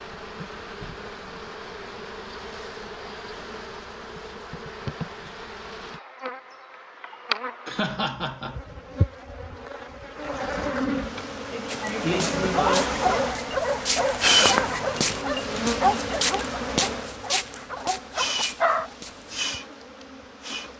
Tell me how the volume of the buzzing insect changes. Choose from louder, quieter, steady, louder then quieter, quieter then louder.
louder then quieter.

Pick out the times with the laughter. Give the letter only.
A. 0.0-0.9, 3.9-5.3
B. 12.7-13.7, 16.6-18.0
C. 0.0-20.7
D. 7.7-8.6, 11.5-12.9
D.